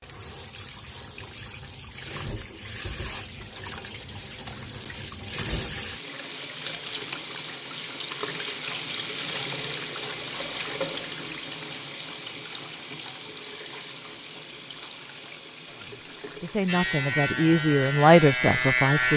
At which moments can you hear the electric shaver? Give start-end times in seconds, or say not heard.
16.6-19.1.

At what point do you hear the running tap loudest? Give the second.
9 s.